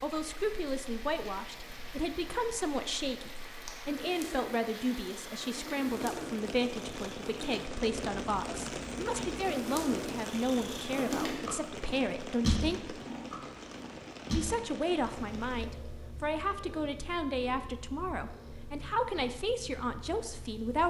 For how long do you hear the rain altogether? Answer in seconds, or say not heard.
16 s.